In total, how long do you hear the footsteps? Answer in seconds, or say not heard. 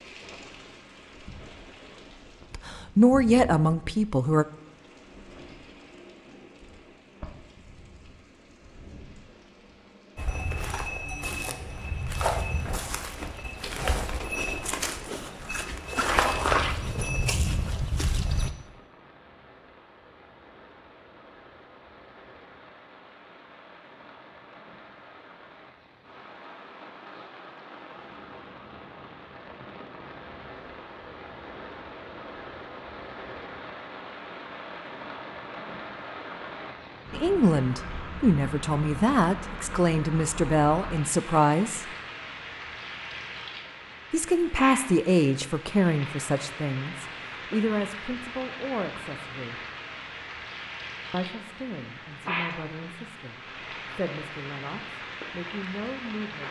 8 s.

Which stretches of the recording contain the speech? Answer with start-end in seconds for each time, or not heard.
2.5-4.5, 37.1-41.9, 44.1-49.6, 51.1-56.4.